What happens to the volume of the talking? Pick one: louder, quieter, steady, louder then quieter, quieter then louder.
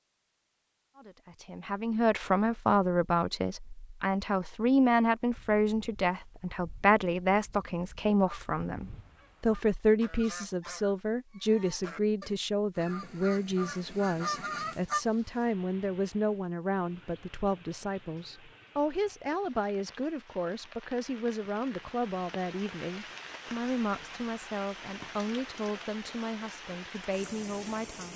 quieter.